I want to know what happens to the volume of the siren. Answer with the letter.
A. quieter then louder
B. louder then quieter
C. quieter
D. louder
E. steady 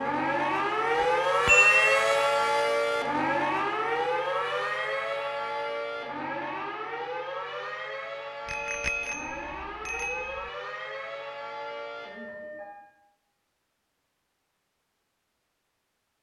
C.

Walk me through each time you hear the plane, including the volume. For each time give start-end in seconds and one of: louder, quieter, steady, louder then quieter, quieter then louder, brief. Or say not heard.
not heard.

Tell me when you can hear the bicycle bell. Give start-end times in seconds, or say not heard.
0.9-1.9, 8.4-10.3.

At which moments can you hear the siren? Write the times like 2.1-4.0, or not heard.
0.0-12.9.